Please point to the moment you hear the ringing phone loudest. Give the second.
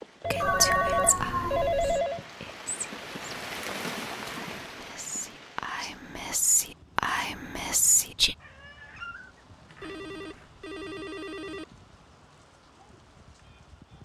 2 s.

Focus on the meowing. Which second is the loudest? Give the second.
1 s.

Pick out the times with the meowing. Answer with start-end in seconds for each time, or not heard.
0.4-2.0, 8.4-10.5.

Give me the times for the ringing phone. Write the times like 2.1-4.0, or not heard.
0.2-2.2, 9.8-11.7.